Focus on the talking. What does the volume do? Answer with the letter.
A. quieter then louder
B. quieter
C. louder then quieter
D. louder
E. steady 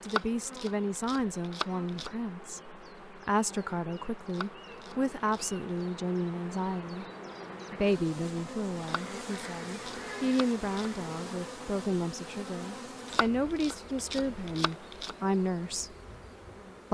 E.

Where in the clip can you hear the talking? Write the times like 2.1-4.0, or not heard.
0.0-7.0, 7.7-15.9.